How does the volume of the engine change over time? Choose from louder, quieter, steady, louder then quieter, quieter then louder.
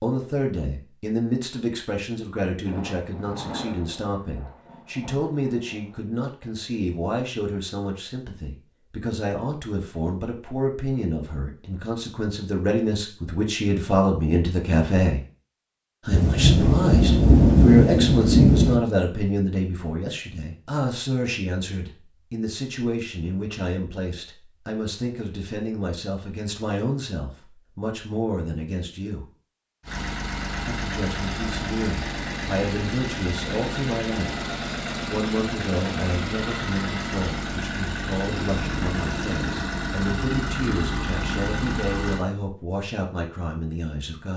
steady.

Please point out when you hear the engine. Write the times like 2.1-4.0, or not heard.
29.8-42.2.